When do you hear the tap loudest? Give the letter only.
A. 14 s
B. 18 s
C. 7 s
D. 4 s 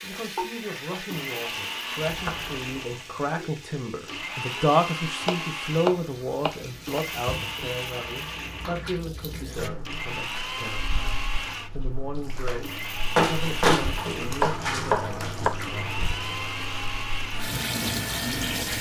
B.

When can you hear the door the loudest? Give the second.
14 s.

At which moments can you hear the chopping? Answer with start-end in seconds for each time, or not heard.
5.2-7.0, 13.9-15.5.